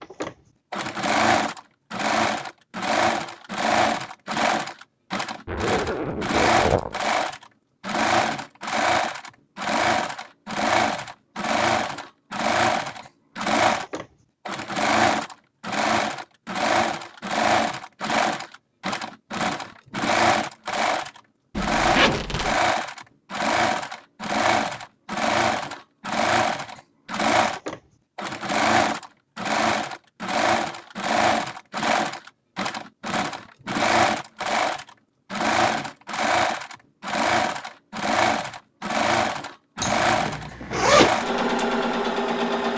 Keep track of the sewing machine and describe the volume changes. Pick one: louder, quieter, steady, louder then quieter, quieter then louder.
steady.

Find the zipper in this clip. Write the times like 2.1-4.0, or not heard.
5.5-7.0, 21.6-22.6, 39.8-41.1.